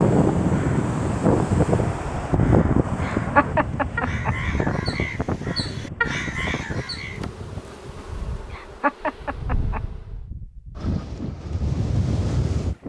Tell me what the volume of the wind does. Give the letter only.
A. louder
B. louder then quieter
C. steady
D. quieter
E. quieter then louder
E.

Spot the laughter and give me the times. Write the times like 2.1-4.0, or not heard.
3.0-4.3, 8.5-9.8.